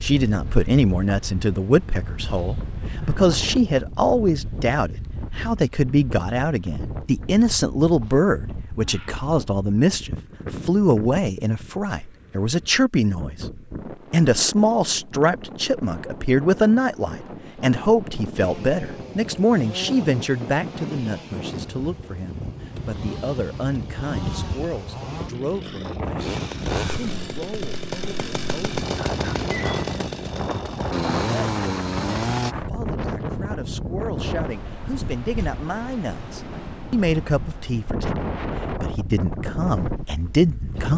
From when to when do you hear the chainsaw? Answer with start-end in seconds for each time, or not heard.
18.4-32.5.